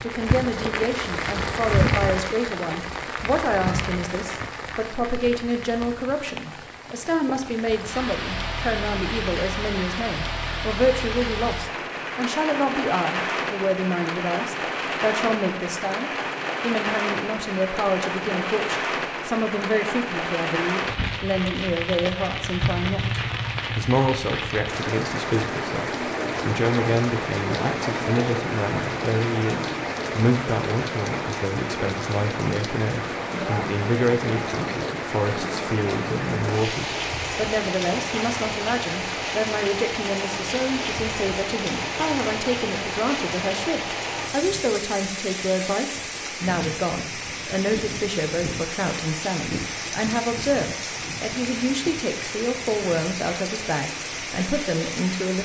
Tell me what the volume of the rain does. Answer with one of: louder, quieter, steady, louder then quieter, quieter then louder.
steady.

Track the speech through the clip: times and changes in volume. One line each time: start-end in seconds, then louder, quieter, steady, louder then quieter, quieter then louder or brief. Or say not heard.
0.0-55.4 steady.